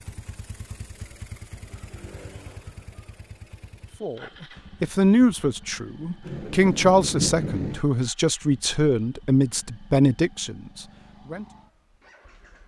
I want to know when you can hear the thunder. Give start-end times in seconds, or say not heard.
6.2-7.8.